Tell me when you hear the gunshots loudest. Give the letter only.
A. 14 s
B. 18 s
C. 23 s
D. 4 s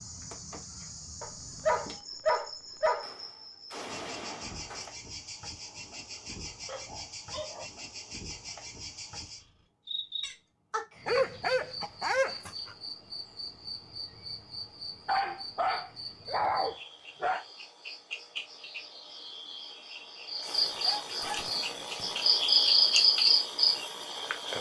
D.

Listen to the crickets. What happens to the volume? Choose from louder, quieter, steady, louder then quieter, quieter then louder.
louder.